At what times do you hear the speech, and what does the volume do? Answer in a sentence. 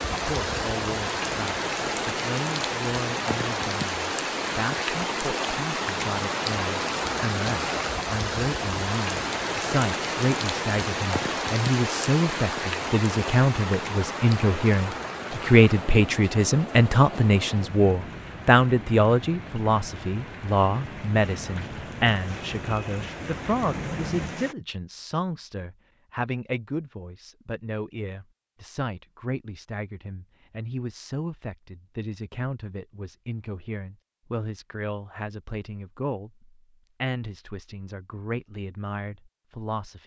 You can hear the speech from 0.1 to 40.0 s, getting louder then quieter.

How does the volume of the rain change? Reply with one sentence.
The volume of the rain goes down.